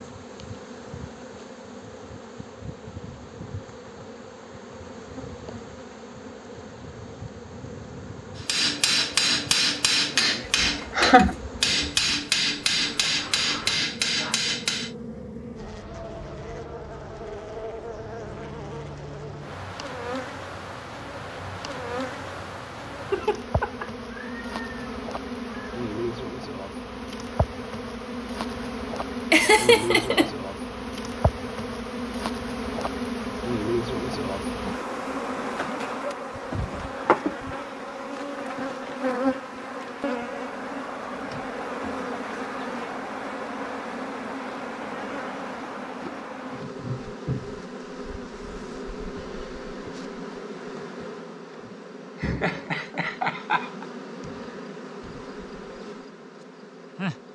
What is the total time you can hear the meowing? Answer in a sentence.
The meowing can be heard for 3 seconds in total.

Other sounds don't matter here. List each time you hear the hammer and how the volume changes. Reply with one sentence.
You can hear the hammer from 8.3 to 14.9 s, at a steady volume.